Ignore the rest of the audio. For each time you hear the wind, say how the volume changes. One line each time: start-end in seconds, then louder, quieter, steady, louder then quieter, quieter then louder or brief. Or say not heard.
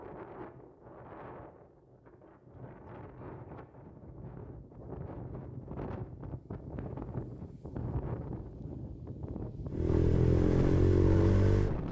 0.0-11.8 louder.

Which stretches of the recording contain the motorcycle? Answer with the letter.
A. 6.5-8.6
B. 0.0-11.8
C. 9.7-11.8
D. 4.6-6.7
C.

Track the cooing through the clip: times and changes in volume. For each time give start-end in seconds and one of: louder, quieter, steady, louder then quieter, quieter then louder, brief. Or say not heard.
not heard.